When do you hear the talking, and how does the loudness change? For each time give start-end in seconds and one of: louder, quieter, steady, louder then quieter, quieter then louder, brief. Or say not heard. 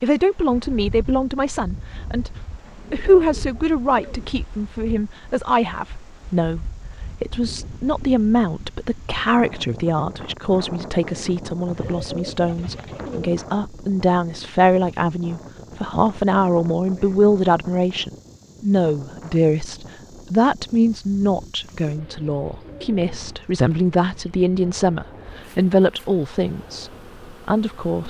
0.0-28.0 steady.